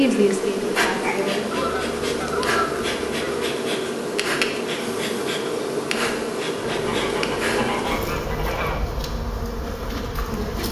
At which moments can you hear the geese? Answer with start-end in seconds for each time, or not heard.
1.5-3.5, 6.6-8.8.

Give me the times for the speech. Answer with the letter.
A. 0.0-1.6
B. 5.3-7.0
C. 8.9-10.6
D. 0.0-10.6
A.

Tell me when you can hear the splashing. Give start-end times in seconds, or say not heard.
not heard.